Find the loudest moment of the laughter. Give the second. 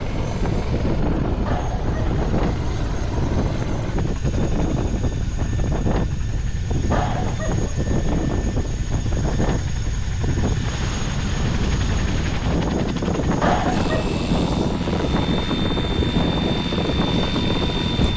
14 s.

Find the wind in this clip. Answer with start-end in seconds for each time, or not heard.
0.0-18.1.